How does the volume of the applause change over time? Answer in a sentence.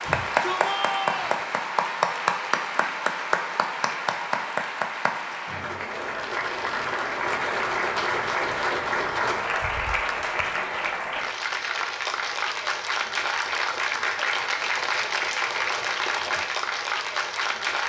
The volume of the applause stays about the same.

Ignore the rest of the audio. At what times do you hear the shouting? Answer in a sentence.
You can hear the shouting from 0.0 to 1.4 s.